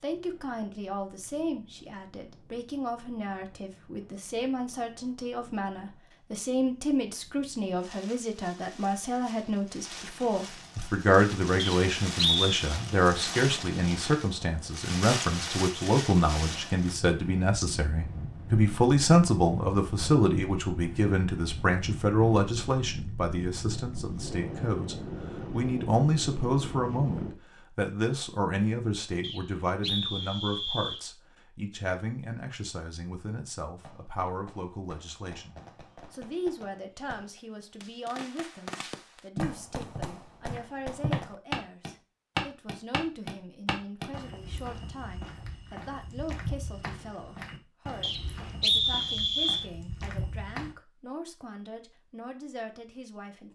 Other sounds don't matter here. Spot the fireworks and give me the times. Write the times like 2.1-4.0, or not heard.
33.8-41.4.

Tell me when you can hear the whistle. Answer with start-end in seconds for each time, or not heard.
11.6-12.4, 29.2-31.1, 48.0-49.6.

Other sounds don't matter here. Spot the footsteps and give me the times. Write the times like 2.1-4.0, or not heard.
39.4-50.8.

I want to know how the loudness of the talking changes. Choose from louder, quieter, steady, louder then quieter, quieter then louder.
louder then quieter.